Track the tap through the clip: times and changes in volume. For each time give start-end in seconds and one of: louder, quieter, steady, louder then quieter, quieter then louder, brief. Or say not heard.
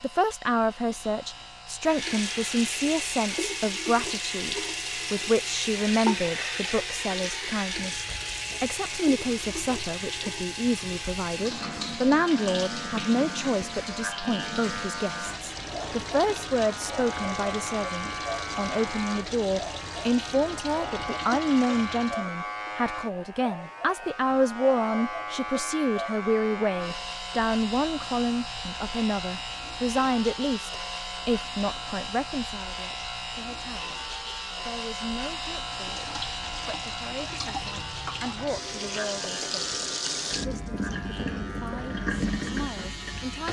1.8-22.2 quieter
35.8-43.4 louder.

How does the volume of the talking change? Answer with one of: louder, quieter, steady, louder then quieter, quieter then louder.
quieter.